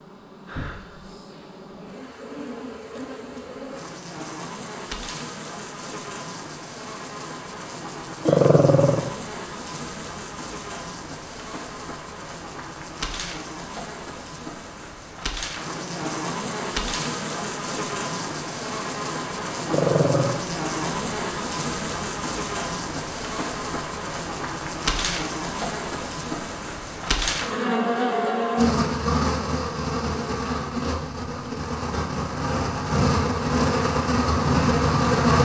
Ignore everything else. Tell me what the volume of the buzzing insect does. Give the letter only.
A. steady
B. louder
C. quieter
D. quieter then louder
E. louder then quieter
B.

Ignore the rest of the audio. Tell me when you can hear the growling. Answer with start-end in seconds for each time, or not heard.
8.2-9.1, 19.7-20.4.